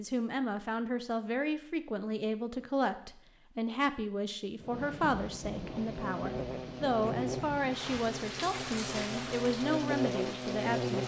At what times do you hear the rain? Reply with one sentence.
You can hear the rain from 4.5 to 11.0 s.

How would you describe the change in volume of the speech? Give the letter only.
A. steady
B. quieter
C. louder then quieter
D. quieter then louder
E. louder
A.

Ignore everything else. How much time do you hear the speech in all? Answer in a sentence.
The speech can be heard for 11 seconds in total.